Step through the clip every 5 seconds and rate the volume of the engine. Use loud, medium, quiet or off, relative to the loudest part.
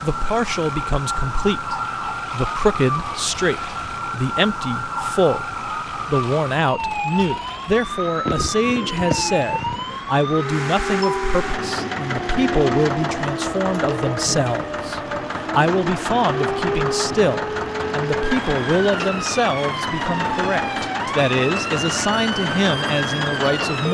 quiet, quiet, loud, loud, loud.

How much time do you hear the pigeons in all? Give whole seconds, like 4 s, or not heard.
2 s.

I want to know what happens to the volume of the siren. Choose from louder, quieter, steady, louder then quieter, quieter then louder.
steady.